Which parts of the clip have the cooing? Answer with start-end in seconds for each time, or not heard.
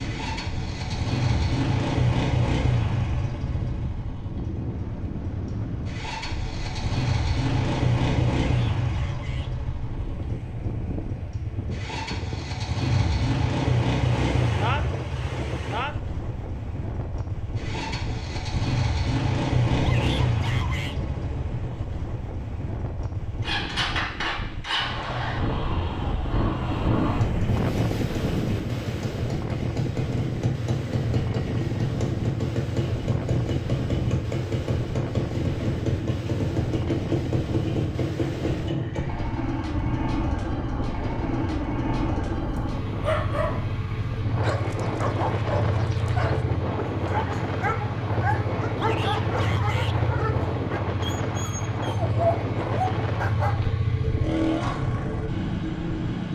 not heard.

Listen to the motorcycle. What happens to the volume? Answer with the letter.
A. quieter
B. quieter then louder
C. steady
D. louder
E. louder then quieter
C.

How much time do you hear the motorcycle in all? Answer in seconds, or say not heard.
56 s.